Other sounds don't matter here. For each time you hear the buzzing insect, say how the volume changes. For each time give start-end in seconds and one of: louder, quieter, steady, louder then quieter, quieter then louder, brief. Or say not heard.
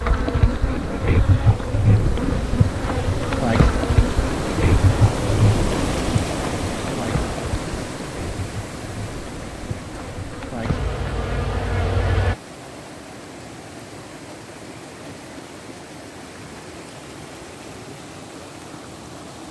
0.0-12.3 quieter then louder.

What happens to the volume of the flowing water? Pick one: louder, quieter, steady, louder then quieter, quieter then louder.
louder then quieter.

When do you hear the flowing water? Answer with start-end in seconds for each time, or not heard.
0.0-19.4.